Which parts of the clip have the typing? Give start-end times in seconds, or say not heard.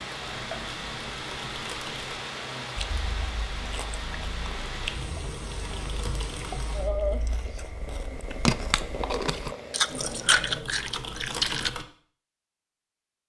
0.2-2.2, 4.5-6.5, 9.8-11.8.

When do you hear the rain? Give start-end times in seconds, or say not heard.
0.0-10.6.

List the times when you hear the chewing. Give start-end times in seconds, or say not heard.
2.8-11.7.